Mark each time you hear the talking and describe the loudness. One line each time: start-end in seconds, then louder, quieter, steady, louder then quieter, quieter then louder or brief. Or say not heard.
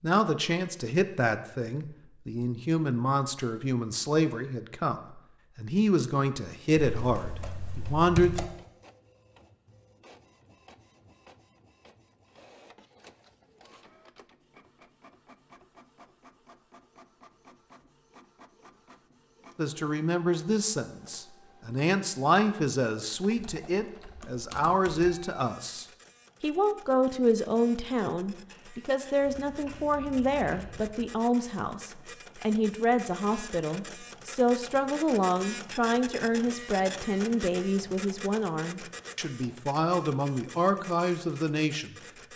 0.0-8.4 steady
19.6-42.3 steady.